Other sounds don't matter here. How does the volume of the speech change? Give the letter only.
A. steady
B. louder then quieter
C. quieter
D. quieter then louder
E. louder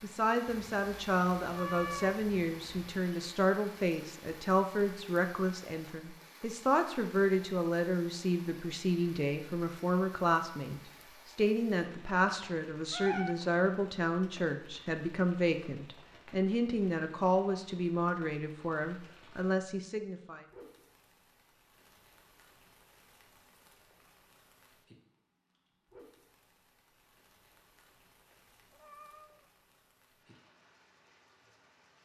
A.